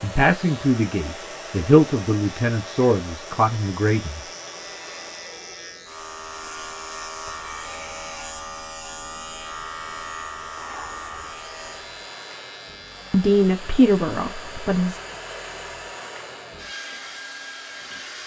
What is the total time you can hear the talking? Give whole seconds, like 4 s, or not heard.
6 s.